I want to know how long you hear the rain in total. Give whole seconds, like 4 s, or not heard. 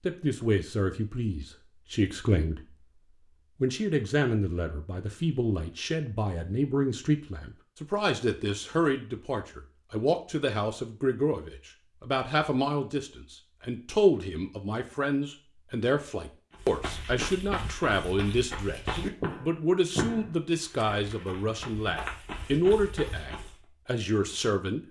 not heard.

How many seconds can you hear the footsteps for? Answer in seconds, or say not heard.
7 s.